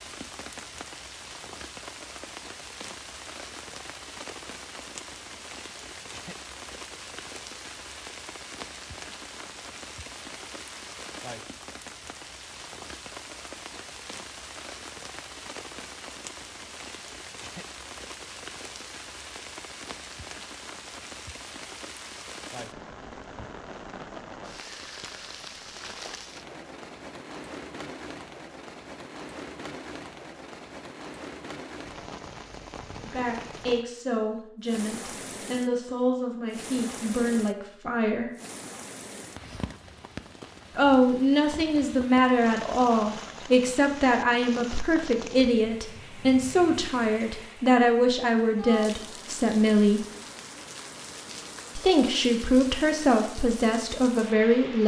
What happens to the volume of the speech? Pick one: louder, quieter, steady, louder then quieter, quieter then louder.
louder.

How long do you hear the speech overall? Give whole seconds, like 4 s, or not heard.
18 s.